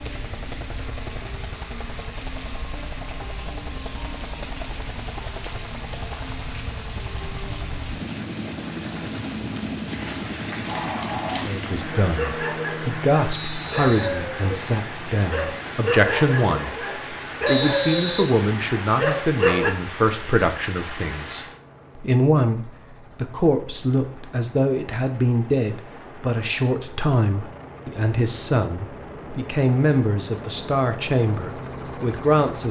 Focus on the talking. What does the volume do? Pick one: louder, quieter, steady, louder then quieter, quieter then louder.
steady.